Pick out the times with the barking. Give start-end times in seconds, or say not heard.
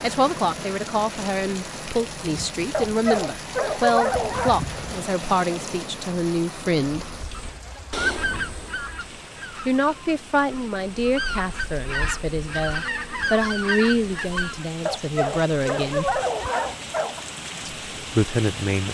2.7-4.5, 14.8-17.2.